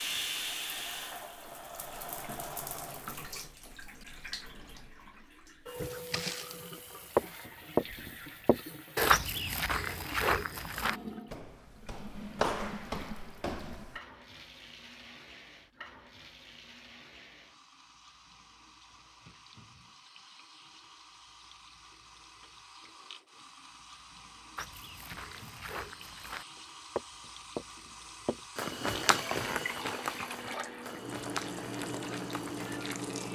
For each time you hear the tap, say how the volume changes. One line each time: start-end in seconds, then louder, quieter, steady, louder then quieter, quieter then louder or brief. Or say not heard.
0.0-33.2 quieter then louder.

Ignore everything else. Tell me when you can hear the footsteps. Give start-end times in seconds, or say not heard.
5.8-14.0, 24.6-32.8.